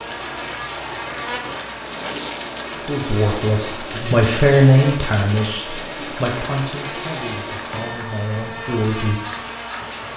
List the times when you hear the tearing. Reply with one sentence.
You can hear the tearing from 1.9 to 2.6 s and from 6.7 to 7.2 s.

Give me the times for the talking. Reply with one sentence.
You can hear the talking from 2.9 to 9.2 s.